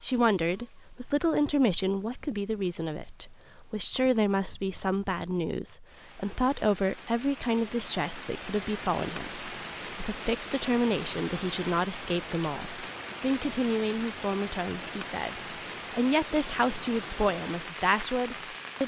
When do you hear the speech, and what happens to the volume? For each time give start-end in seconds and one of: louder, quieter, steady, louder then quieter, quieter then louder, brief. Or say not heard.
0.0-18.8 steady.